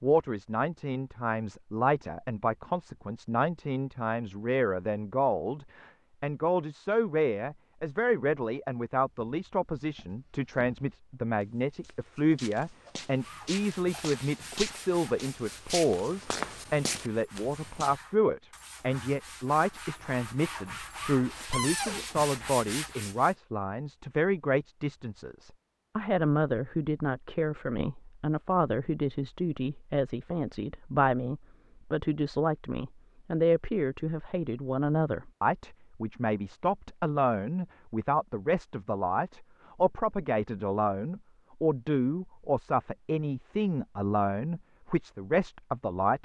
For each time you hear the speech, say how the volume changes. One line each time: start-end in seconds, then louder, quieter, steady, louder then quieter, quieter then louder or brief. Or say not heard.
0.0-46.2 steady.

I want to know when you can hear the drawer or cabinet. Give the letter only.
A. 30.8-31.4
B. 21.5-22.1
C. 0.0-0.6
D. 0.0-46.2
B.